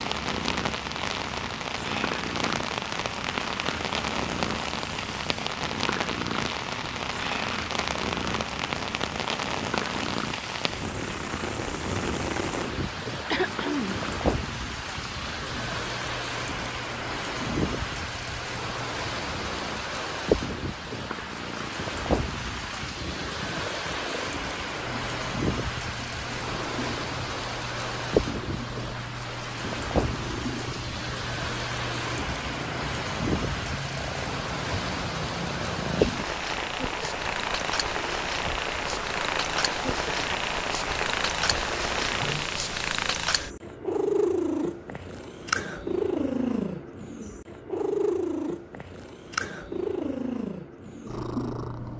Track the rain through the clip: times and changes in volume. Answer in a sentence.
The rain can be heard from 0.0 to 42.5 s, at a steady volume.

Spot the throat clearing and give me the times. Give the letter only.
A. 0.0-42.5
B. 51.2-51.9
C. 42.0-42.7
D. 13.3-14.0
D.